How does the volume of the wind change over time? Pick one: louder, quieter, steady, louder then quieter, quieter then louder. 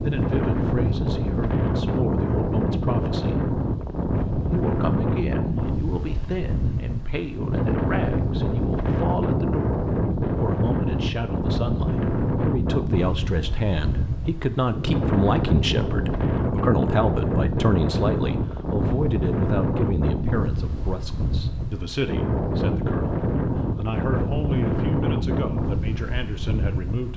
steady.